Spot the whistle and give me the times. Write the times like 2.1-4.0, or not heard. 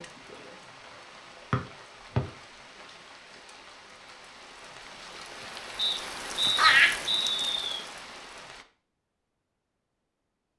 1.5-2.2, 5.8-7.8.